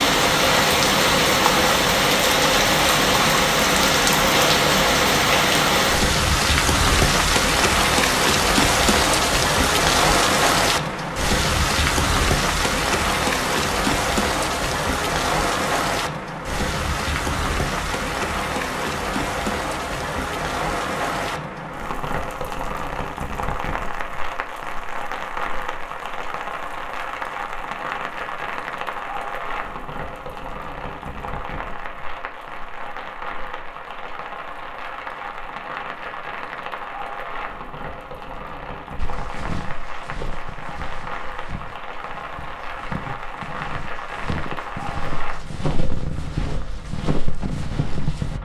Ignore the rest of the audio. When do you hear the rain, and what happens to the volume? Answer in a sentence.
The rain can be heard from 0.0 to 48.4 s, getting quieter.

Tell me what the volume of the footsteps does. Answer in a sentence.
The volume of the footsteps goes down, then up.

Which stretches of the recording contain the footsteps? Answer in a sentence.
The footsteps can be heard from 39.0 to 48.4 s.